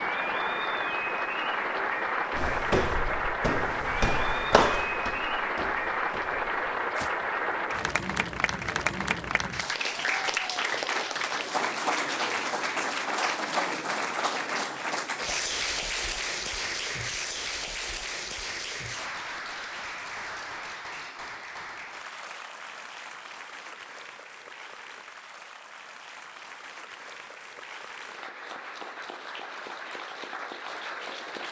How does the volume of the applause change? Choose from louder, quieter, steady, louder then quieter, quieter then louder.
quieter.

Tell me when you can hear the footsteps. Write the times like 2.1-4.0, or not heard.
2.3-7.2.